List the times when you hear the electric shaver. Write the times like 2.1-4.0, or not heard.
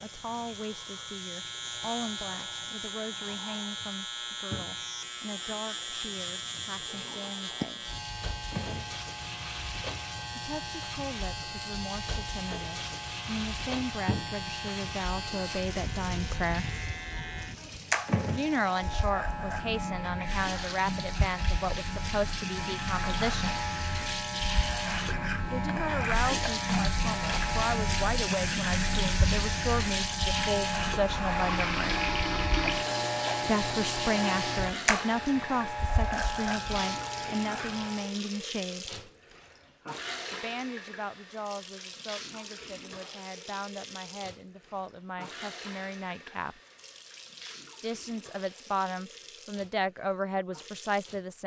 0.0-38.1.